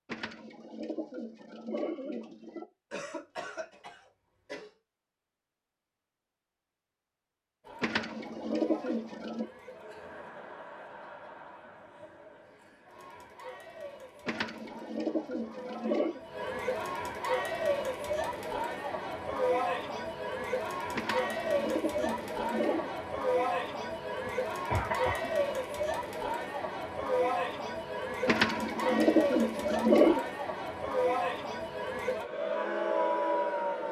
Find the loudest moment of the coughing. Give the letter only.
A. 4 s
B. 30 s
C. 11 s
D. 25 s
D.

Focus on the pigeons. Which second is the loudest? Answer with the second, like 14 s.
30 s.